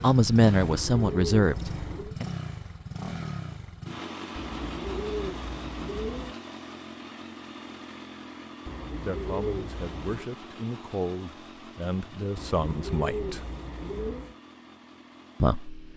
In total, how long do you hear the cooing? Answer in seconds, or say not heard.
7 s.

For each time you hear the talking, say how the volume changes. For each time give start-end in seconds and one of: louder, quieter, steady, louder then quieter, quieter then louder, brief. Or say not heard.
0.0-2.2 brief
9.0-13.4 louder
15.4-15.9 brief.